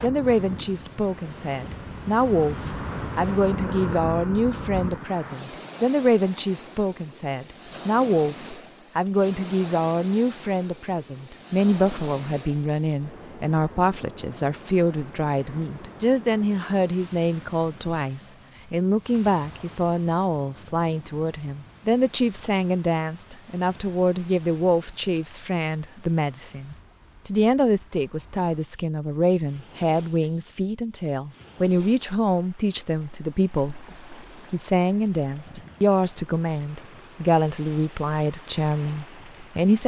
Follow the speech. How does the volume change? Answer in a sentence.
The loudness of the speech stays about the same.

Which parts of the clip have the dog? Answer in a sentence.
The dog can't be heard in this clip.